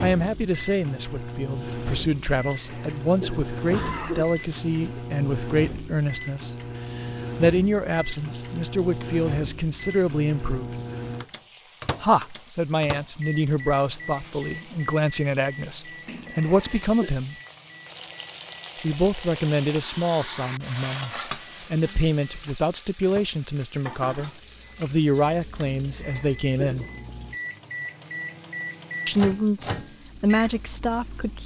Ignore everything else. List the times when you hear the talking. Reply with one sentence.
You can hear the talking from 0.0 to 10.8 s, from 12.0 to 17.4 s, from 18.8 to 26.9 s and from 29.1 to 31.4 s.